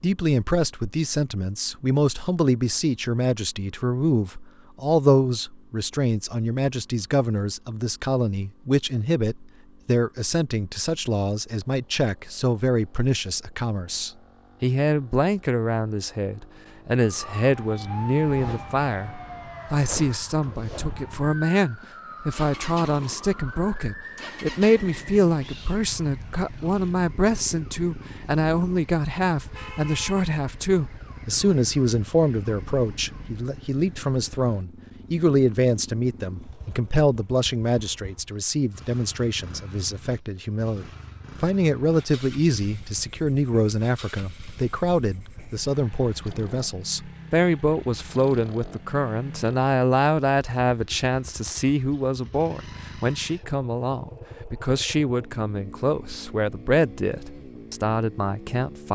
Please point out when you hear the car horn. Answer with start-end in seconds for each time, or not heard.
not heard.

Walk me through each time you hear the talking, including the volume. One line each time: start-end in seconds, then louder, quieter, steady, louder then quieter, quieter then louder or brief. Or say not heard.
0.0-58.9 steady.